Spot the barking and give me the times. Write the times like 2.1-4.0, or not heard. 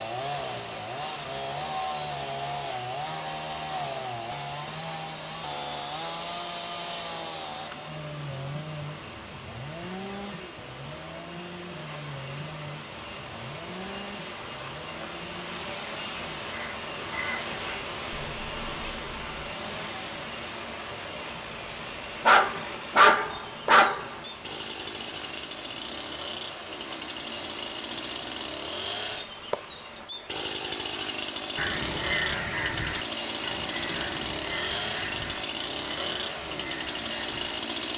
22.2-24.2.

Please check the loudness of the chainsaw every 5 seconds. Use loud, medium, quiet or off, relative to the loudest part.
loud, loud, medium, medium, medium, loud, loud, loud.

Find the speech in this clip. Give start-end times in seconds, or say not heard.
not heard.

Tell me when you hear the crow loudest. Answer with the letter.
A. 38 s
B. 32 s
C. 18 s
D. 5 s
B.